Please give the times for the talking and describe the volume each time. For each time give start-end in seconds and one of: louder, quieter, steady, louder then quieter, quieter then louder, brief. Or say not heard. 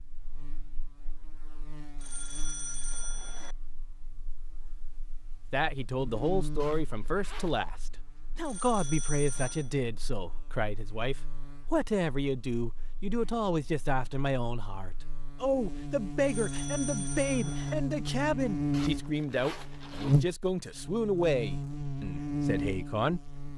5.5-23.5 steady.